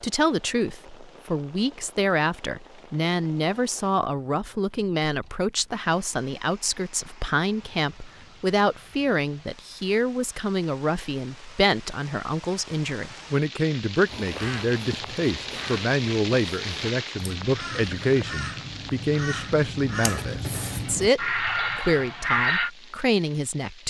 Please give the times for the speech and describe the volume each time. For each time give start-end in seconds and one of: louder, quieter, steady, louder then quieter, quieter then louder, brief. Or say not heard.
0.0-23.8 steady.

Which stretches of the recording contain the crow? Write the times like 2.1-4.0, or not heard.
14.1-22.7.